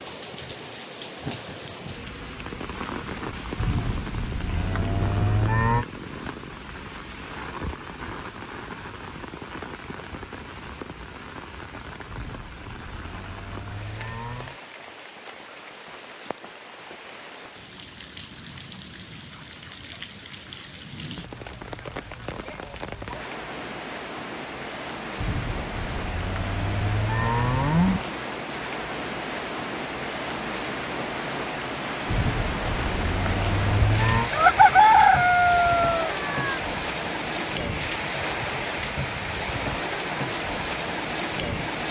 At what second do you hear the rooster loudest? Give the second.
35 s.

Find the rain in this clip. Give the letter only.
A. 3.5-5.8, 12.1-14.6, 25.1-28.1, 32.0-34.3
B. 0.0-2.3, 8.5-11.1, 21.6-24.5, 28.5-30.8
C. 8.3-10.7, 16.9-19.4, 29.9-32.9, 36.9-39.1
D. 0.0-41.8
D.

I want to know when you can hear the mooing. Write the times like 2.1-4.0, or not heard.
3.5-5.8, 12.1-14.6, 25.1-28.1, 32.0-34.3.